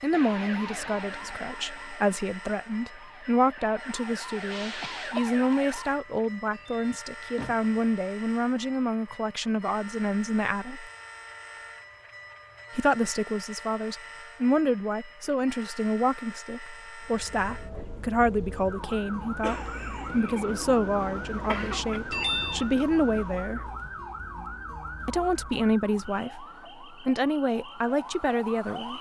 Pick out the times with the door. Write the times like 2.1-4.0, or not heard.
6.5-7.8, 22.1-22.7.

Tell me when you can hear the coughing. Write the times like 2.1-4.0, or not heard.
4.8-5.5, 19.4-22.0.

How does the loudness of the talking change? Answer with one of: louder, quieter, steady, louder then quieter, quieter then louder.
steady.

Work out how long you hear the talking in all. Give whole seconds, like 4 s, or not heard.
26 s.